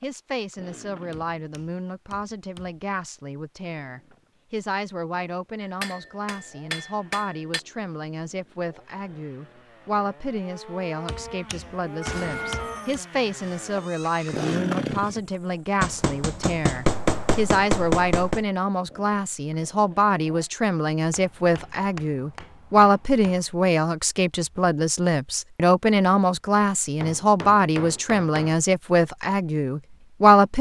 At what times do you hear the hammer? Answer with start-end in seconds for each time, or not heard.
1.1-2.8, 5.6-7.6, 11.1-12.9, 15.8-18.4, 21.1-23.4, 26.6-28.6.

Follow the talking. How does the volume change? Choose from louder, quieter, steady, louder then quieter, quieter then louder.
louder.